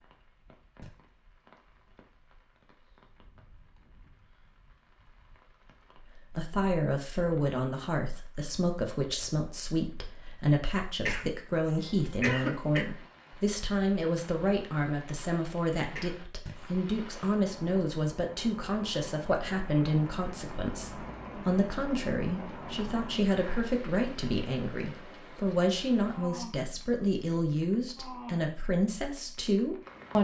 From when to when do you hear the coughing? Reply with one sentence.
You can hear the coughing from 11.1 to 12.8 s and from 15.9 to 16.7 s.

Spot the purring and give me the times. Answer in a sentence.
The purring can't be heard in this clip.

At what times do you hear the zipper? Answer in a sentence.
The zipper can't be heard in this clip.